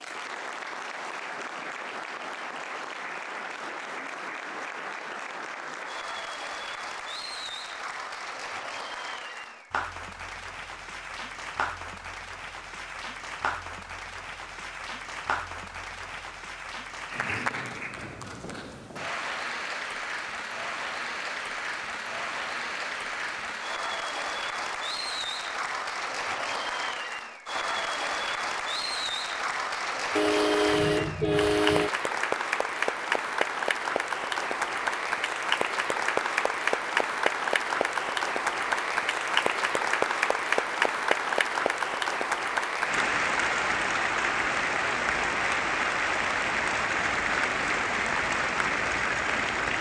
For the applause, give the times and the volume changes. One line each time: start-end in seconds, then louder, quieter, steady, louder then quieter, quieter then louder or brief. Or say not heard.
0.0-49.7 louder.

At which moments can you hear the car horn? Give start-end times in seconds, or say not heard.
30.1-31.9.